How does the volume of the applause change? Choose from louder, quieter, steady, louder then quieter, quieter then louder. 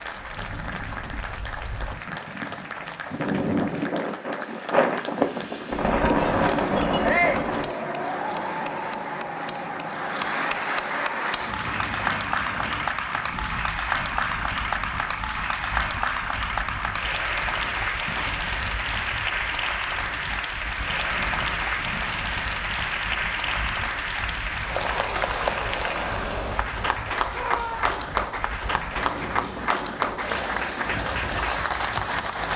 louder.